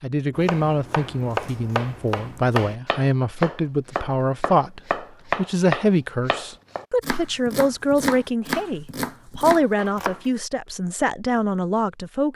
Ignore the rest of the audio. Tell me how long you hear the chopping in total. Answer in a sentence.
You can hear the chopping for 10 seconds altogether.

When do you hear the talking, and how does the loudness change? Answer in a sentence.
The talking can be heard from 0.0 to 12.3 s, at a steady volume.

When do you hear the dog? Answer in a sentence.
You can't hear the dog here.